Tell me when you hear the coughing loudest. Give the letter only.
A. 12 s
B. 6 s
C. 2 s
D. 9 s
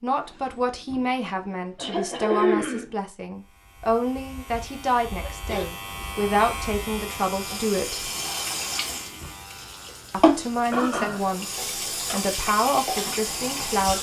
C.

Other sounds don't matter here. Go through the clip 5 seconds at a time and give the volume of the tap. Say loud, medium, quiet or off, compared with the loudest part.
off, medium, loud.